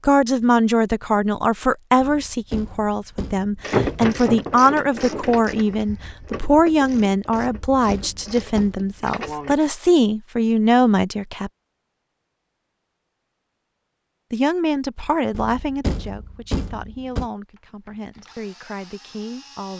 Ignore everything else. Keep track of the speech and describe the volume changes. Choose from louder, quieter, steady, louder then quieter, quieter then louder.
quieter.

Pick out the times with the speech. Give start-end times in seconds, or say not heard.
0.0-11.5, 14.3-19.7.